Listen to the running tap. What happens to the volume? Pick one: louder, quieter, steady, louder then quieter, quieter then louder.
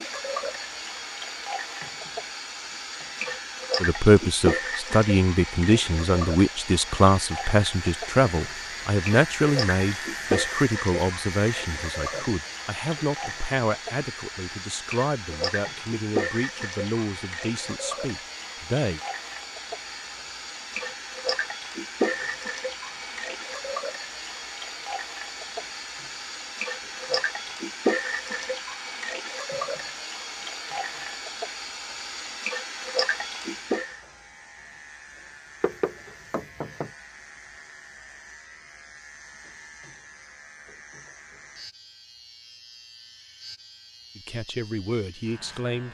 steady.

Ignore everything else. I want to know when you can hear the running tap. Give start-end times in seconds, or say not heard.
0.0-34.0.